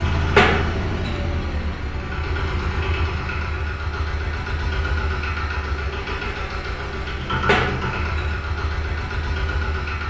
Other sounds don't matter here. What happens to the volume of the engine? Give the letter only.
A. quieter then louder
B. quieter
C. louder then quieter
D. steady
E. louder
D.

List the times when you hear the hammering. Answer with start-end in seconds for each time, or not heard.
0.3-1.2, 7.5-8.3.